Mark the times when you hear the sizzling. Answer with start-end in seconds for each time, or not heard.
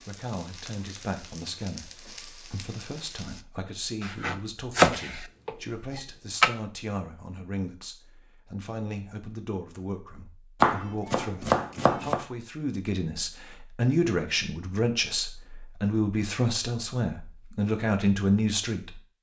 0.0-3.5.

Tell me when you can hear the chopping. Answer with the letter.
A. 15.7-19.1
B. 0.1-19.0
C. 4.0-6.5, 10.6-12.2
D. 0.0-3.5
C.